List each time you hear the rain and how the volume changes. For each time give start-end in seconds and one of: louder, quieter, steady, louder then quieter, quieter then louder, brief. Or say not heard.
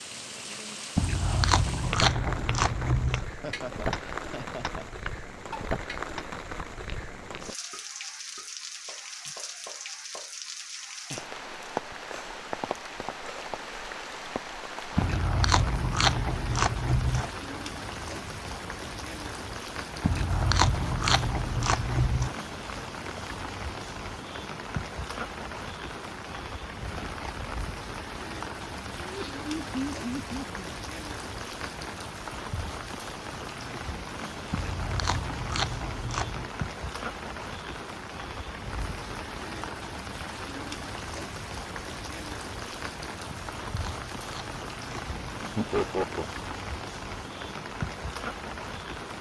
0.0-49.1 steady.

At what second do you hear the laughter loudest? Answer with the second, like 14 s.
46 s.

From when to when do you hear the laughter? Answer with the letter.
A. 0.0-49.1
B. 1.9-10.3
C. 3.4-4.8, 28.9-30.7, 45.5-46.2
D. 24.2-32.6
C.